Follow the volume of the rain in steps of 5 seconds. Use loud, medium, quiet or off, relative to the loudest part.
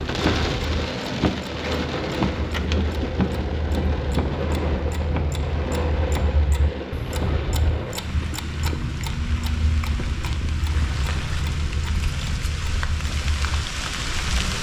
loud, medium, medium.